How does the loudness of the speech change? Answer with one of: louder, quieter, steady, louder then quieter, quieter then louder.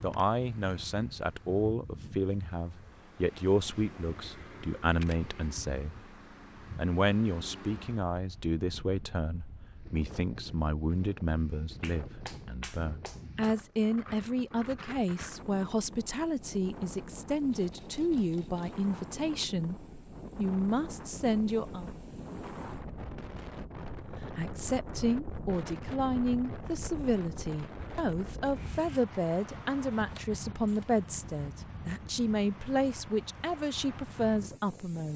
steady.